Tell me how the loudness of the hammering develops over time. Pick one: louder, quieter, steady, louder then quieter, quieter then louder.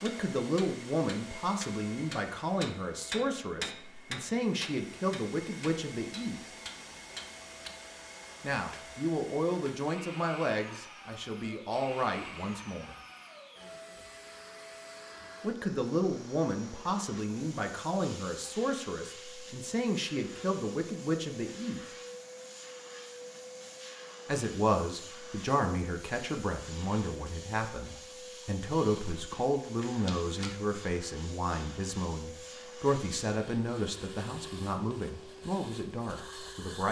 louder then quieter.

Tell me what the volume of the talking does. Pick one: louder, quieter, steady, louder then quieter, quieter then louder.
steady.